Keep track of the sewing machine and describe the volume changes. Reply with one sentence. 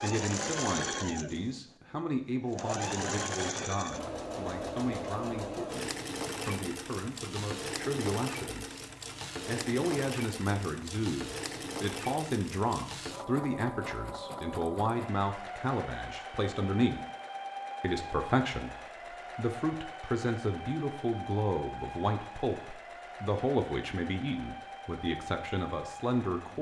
The volume of the sewing machine goes down.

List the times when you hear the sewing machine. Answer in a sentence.
You can hear the sewing machine from 0.0 to 26.5 s.